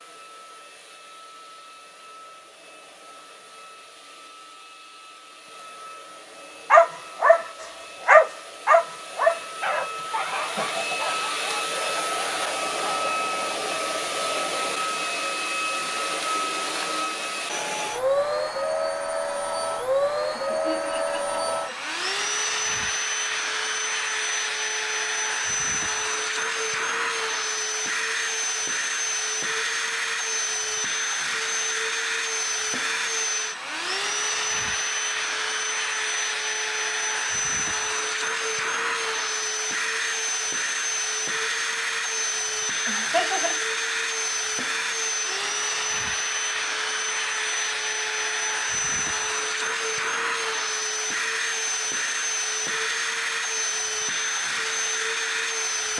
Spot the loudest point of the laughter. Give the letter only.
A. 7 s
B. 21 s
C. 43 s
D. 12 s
C.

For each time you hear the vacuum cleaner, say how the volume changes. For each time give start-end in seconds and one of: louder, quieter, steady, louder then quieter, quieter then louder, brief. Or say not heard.
0.0-55.9 louder.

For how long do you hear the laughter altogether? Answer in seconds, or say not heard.
3 s.